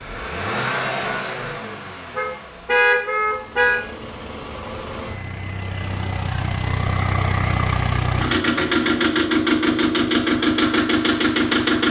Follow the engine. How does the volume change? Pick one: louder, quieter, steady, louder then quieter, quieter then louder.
quieter then louder.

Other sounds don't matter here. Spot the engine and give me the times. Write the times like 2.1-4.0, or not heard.
0.0-11.8.